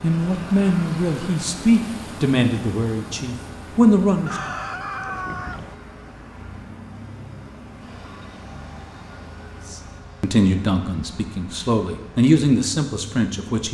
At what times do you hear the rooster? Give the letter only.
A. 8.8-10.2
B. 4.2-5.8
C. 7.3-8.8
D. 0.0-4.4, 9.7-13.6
B.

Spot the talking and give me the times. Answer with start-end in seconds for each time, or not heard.
0.0-4.4, 9.7-13.6.